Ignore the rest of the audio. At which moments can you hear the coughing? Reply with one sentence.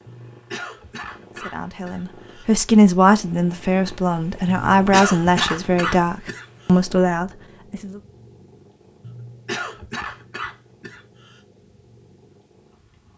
You can hear the coughing from 0.1 to 2.5 s, from 4.5 to 6.8 s and from 9.0 to 11.4 s.